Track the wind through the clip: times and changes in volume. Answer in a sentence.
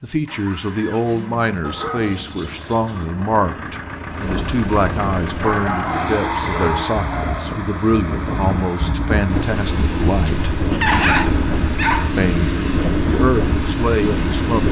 You can hear the wind from 4.0 to 14.6 s, getting louder.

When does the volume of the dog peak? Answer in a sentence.
The volume of the dog peaks at 11 seconds.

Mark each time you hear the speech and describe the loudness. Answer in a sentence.
The speech can be heard from 0.0 to 10.6 s, at a steady volume; and briefly from 12.2 to 14.6 s.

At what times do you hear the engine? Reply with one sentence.
The engine can be heard from 0.1 to 14.6 s.